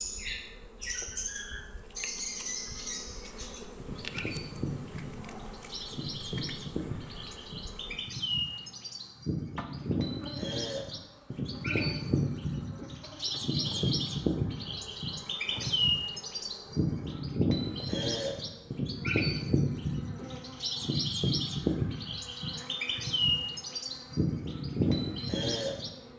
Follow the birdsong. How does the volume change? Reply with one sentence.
The loudness of the birdsong goes up.